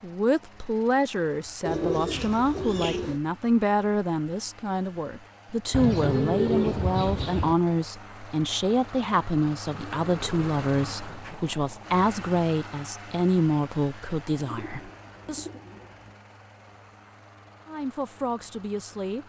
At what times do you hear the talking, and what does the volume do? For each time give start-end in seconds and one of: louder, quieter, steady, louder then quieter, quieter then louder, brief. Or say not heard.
0.0-15.4 steady
17.6-19.2 brief.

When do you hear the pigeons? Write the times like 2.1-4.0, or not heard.
1.6-3.2, 5.7-7.5, 9.7-11.4, 14.4-16.1.